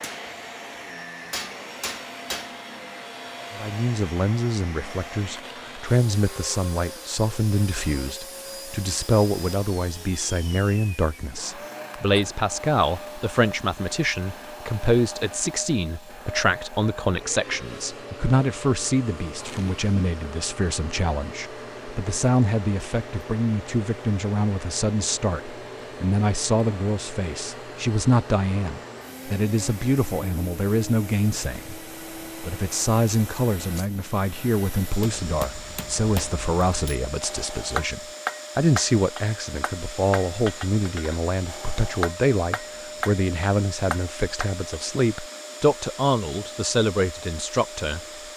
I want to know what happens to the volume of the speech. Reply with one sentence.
The loudness of the speech stays about the same.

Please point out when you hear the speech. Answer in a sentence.
The speech can be heard from 3.5 to 48.0 s.